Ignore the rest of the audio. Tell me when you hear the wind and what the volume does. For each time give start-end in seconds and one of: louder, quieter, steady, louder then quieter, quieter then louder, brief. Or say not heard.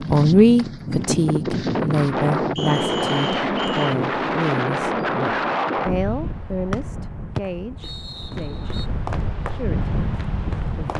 0.0-10.9 quieter then louder.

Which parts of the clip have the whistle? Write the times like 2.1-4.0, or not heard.
2.5-4.0, 6.7-8.8.